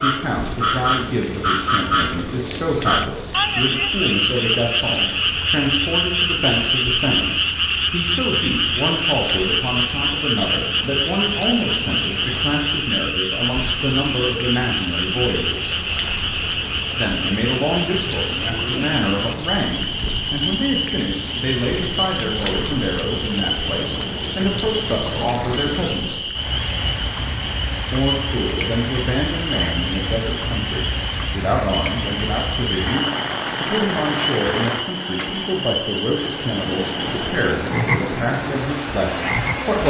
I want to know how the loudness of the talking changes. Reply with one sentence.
The volume of the talking stays about the same.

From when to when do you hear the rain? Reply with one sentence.
You can hear the rain from 0.2 to 39.8 s.